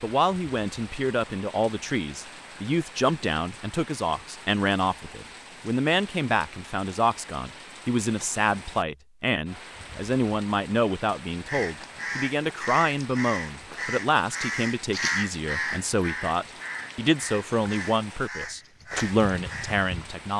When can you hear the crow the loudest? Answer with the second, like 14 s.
15 s.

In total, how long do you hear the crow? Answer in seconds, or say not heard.
9 s.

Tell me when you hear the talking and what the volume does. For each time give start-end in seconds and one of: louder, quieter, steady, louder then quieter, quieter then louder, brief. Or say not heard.
0.0-20.3 steady.